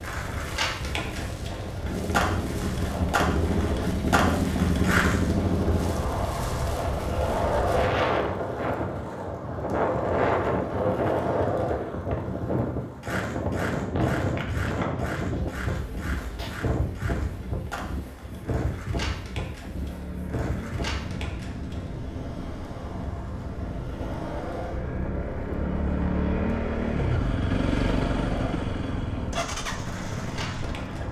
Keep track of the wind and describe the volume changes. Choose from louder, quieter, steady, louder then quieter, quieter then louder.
louder then quieter.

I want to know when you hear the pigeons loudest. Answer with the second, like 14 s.
14 s.